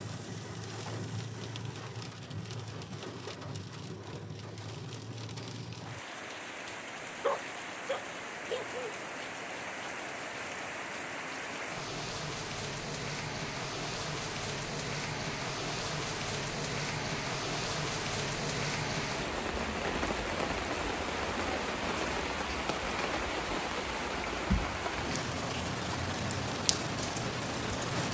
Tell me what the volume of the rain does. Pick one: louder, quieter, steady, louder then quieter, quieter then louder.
louder.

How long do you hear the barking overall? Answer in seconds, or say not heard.
2 s.